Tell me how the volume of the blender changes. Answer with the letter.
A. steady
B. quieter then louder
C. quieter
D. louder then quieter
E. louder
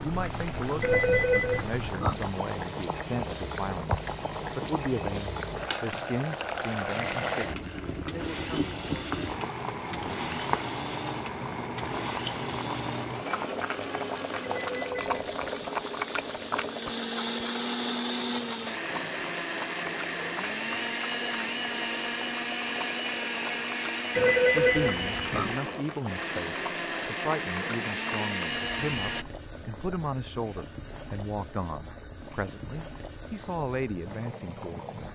E.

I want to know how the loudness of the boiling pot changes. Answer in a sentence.
The loudness of the boiling pot goes down.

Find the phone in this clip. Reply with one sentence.
The phone can be heard from 0.8 to 2.2 s, from 14.4 to 15.8 s and from 24.1 to 25.6 s.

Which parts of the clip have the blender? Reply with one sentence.
The blender can be heard from 0.0 to 29.2 s.